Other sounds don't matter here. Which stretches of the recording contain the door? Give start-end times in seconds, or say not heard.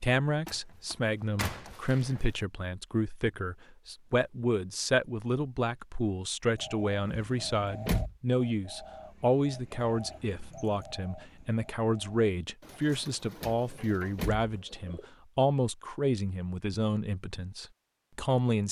0.5-2.2, 7.0-8.2, 13.4-14.5.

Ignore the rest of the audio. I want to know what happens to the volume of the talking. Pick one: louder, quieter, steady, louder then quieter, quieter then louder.
steady.